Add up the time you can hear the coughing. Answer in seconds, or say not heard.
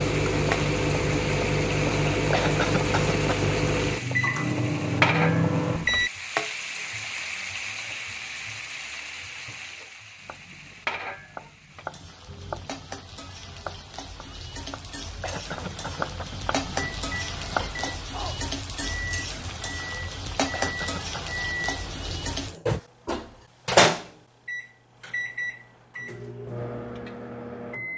3 s.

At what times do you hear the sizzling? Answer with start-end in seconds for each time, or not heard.
0.0-22.6.